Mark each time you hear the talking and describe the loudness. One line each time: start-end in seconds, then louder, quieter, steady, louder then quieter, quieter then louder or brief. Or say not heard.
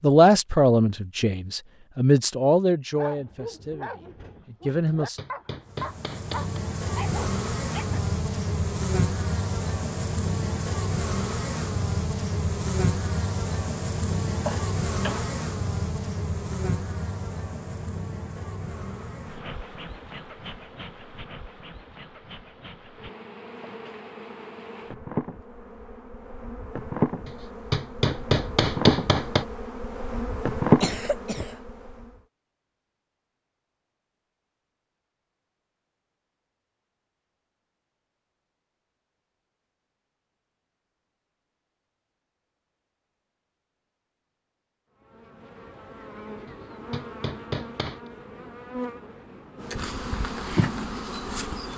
0.0-5.2 quieter then louder.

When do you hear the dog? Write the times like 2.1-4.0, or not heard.
3.0-8.0.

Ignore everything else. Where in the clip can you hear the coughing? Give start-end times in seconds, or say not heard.
14.4-15.3, 30.8-31.6.